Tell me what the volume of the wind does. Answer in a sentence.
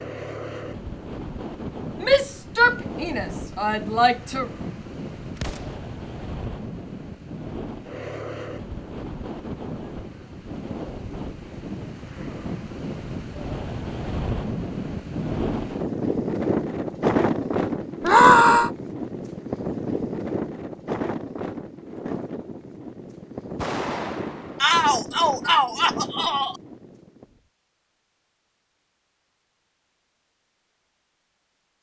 The volume of the wind goes up, then down.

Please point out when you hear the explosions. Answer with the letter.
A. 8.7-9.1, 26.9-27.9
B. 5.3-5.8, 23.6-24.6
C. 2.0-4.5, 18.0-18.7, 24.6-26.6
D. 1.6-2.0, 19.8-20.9
B.